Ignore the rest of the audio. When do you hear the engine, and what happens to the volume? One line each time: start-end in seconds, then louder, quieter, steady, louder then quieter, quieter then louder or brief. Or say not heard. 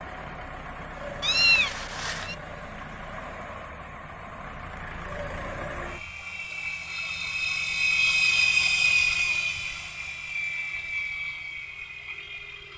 0.0-12.7 louder then quieter.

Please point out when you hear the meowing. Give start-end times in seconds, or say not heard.
1.2-2.4.